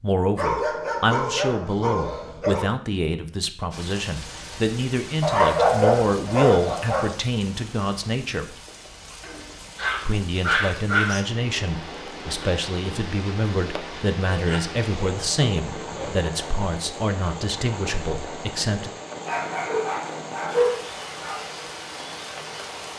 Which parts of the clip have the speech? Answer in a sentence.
You can hear the speech from 0.0 to 8.6 s and from 10.1 to 18.9 s.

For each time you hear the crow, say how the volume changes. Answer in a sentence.
You can't hear the crow here.